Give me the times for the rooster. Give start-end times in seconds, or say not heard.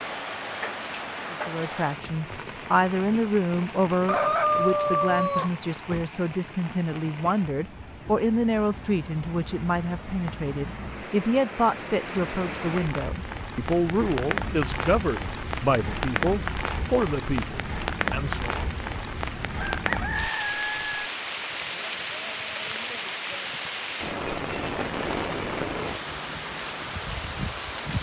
4.0-6.0, 19.6-21.1.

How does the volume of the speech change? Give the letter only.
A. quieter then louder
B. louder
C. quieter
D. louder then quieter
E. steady
E.